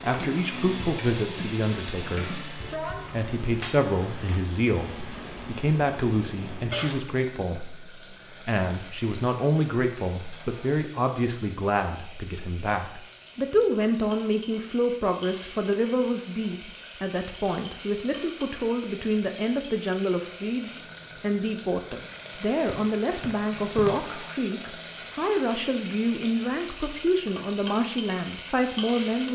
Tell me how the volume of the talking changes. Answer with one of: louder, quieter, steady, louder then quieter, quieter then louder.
steady.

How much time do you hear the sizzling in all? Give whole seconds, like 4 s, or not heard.
29 s.